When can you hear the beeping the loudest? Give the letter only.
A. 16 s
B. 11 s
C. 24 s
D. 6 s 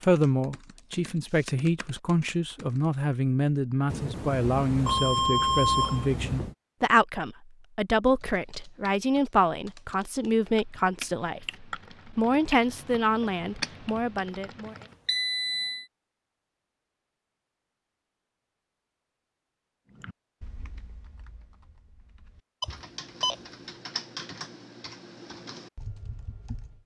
D.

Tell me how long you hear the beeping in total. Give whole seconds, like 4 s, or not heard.
5 s.